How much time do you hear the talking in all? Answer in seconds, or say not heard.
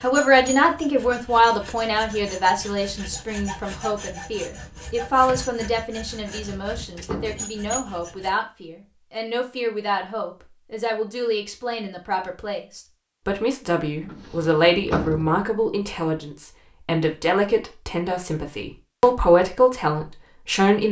21 s.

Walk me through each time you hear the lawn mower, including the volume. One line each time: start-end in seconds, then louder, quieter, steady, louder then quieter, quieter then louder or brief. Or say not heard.
not heard.